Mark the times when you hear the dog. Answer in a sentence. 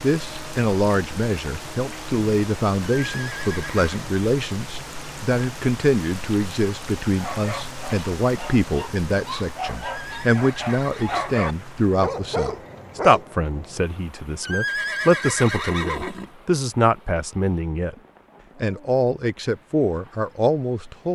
You can hear the dog from 7.1 to 13.2 s.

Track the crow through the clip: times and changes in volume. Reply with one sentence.
The crow can't be heard in this clip.